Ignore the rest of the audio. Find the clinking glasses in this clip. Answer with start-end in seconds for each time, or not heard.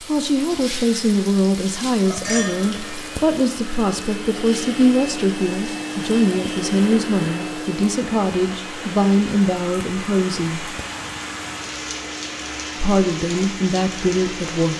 2.2-3.0.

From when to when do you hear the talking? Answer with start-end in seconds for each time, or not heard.
0.0-10.8, 12.8-14.7.